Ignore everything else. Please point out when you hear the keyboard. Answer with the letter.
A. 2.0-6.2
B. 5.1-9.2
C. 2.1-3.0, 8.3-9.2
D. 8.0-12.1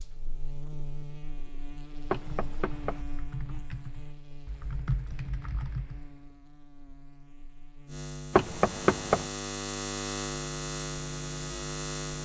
A.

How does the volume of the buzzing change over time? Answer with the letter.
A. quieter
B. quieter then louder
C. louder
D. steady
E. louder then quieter
B.